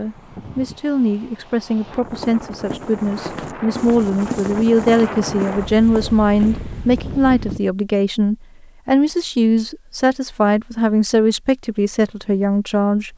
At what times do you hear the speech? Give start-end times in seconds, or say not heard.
0.0-13.1.